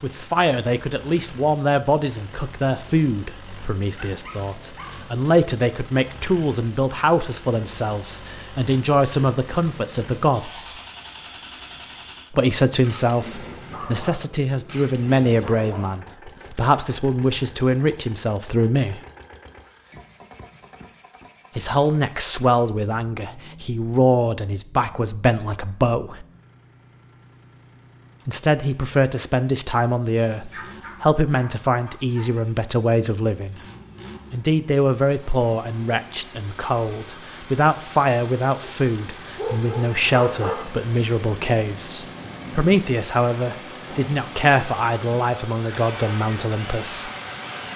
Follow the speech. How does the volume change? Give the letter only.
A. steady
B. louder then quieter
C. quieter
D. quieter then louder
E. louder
A.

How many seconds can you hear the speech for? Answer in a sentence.
You can hear the speech for 40 seconds altogether.